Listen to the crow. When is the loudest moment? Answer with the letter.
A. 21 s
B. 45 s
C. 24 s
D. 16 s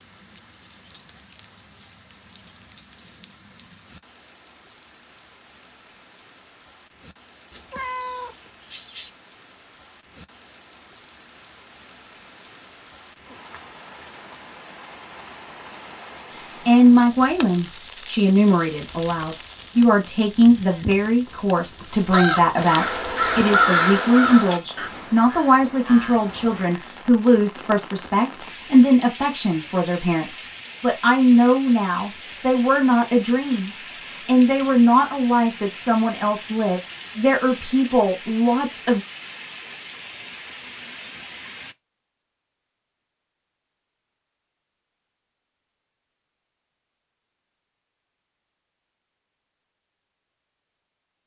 C.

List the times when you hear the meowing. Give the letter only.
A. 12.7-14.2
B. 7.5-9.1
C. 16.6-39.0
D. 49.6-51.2
B.